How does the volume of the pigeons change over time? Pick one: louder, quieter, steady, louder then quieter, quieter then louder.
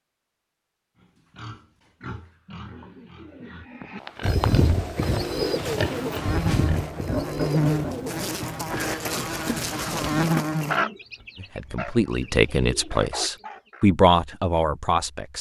quieter.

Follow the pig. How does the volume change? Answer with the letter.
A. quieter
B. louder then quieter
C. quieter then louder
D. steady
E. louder
E.